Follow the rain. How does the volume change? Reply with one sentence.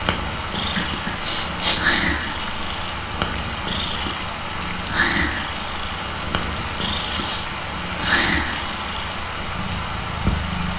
The loudness of the rain stays about the same.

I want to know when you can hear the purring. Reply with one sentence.
The purring can be heard from 0.0 to 10.7 s.